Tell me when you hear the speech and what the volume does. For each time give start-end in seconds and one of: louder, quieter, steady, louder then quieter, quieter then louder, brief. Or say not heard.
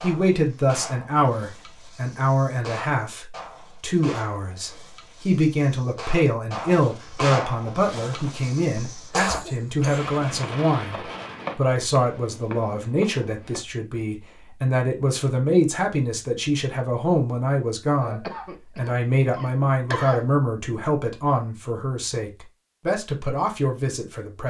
0.0-24.4 steady.